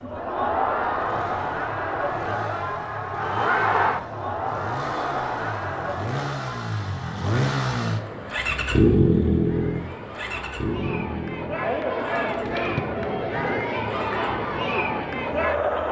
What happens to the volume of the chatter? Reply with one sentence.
The volume of the chatter goes down, then up.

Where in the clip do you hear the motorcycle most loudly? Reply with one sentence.
The loudest moment of the motorcycle is at 9 seconds.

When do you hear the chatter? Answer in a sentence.
The chatter can be heard from 0.0 to 15.8 s.